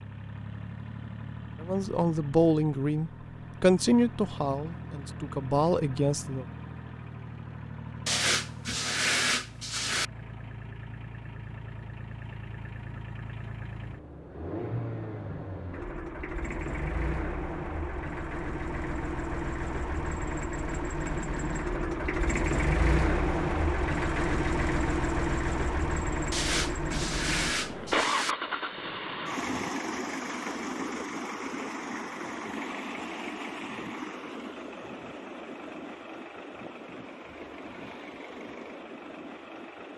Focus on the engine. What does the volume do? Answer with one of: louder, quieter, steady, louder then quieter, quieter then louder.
louder then quieter.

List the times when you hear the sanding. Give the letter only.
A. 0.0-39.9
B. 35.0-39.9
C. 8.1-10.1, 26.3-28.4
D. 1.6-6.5
C.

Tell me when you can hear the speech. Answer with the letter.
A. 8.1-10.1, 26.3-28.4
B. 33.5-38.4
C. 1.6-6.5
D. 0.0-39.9
C.